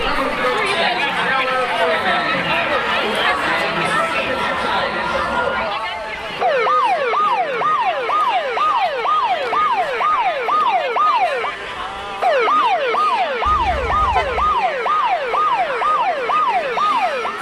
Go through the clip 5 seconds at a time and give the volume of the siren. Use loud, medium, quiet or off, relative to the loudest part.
medium, loud, loud, loud.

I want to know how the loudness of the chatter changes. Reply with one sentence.
The loudness of the chatter goes down.